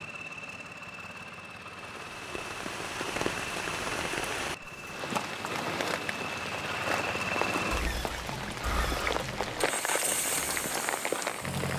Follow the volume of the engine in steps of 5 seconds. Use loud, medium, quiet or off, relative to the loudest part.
medium, loud, loud.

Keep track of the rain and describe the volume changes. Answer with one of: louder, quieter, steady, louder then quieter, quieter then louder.
steady.